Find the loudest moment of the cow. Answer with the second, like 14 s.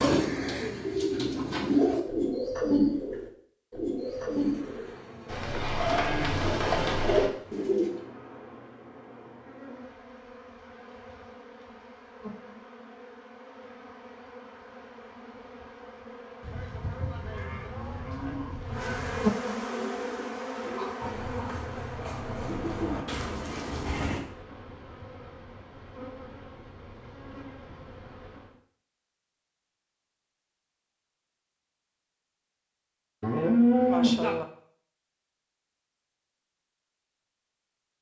34 s.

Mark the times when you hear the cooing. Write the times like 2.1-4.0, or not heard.
0.0-7.9, 19.8-24.2.